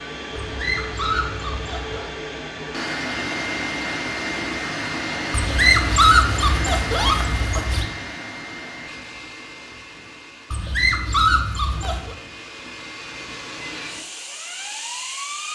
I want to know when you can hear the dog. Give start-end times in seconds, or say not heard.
0.3-2.0, 5.3-7.9, 10.5-12.2.